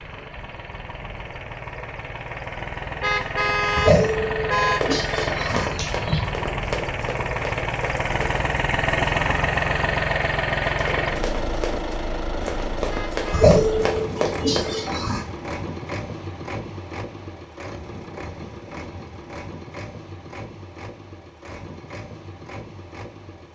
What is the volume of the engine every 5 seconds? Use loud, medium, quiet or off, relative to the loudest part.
medium, loud, loud, medium, quiet.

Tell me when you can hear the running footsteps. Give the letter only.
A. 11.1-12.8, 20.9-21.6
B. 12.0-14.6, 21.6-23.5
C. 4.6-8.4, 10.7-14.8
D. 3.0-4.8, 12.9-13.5
C.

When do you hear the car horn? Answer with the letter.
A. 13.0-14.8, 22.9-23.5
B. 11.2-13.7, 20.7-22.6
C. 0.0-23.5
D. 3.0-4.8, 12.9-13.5
D.